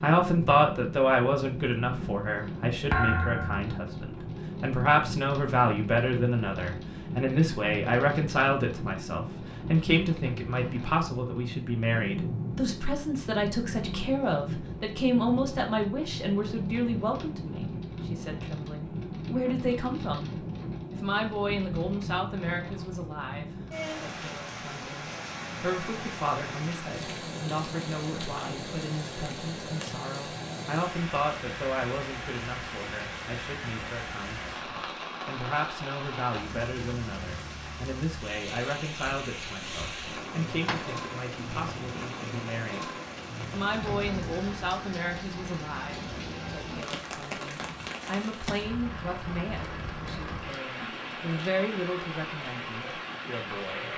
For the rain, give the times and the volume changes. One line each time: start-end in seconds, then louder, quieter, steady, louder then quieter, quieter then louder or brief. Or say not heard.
0.0-53.9 steady.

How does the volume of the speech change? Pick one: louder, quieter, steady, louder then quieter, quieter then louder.
quieter.